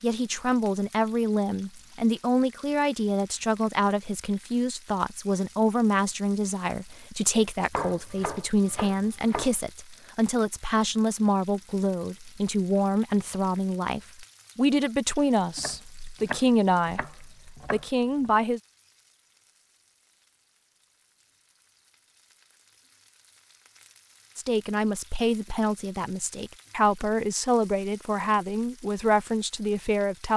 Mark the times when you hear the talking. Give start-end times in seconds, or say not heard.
0.0-18.6, 24.4-30.3.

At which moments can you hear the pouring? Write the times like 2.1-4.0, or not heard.
not heard.